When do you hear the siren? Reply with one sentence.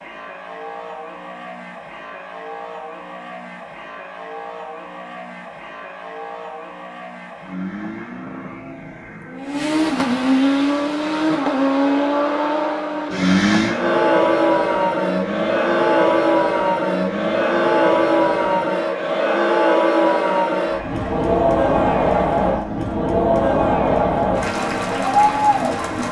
You can't hear the siren here.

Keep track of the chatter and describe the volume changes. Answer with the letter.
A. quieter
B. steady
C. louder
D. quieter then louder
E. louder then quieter
C.